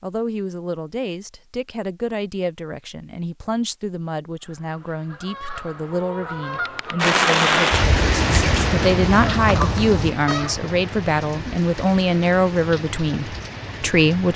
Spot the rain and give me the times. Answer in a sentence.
The rain can be heard from 7.0 to 14.3 s.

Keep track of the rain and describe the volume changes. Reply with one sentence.
The volume of the rain goes down.